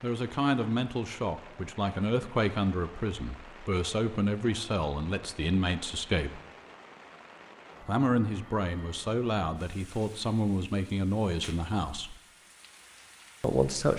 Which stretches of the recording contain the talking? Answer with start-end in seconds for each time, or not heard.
0.0-6.4, 7.8-12.2, 13.4-13.9.